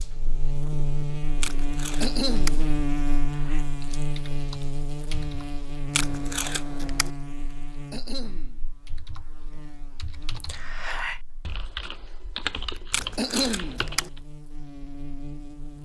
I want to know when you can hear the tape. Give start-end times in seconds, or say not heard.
1.4-2.6, 5.9-7.1, 12.9-14.1.